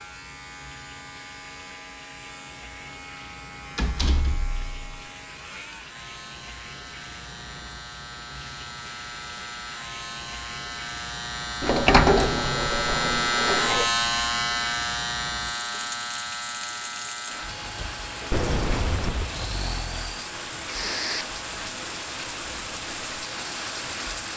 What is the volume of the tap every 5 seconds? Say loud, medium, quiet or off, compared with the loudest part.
quiet, medium, medium, loud, loud.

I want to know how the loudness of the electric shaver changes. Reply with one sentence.
The loudness of the electric shaver goes up, then down.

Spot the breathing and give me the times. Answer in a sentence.
The breathing can be heard from 19.2 to 21.2 s.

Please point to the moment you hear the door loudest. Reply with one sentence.
The loudest moment of the door is at 12 seconds.